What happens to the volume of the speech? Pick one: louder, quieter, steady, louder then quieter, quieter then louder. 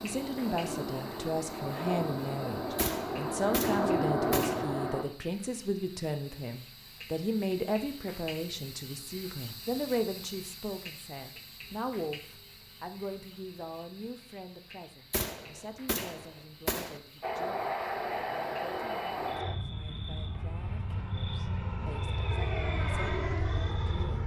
quieter.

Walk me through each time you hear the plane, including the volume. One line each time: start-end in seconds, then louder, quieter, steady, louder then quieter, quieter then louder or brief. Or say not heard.
0.0-5.0 louder
17.2-24.2 quieter then louder.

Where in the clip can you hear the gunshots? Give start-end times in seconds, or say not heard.
2.8-4.7, 15.1-17.0.